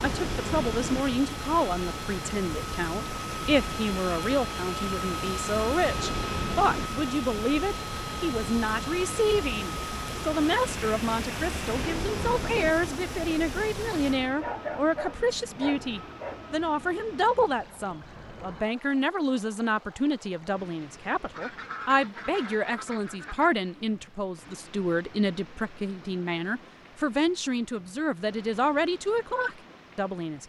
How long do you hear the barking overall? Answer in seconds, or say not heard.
2 s.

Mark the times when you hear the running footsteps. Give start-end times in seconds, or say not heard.
not heard.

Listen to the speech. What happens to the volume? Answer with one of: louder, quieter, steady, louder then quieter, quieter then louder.
steady.